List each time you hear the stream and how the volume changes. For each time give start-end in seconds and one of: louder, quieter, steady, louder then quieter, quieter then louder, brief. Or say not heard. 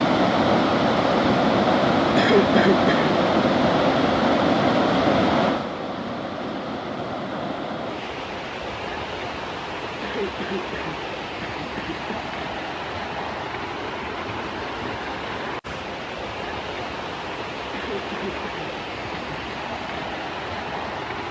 0.0-21.2 quieter.